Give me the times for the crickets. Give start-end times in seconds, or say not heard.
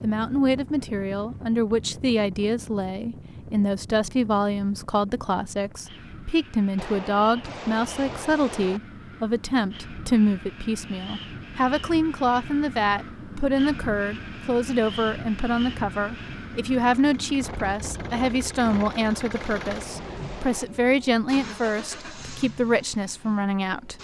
not heard.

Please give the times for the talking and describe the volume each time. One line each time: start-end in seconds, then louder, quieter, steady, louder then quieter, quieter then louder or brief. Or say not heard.
0.0-23.9 steady.